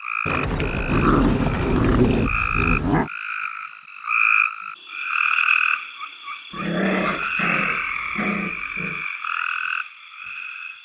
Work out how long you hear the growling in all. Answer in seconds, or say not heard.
5 s.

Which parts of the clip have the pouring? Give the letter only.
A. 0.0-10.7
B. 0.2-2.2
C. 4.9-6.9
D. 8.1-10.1
B.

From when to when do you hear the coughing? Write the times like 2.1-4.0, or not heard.
not heard.